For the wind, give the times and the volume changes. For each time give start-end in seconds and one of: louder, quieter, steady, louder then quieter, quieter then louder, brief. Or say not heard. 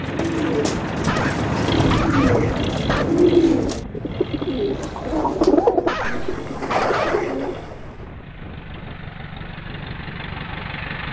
0.0-11.0 quieter.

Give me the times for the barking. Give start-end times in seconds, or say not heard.
1.1-3.0, 5.8-7.4.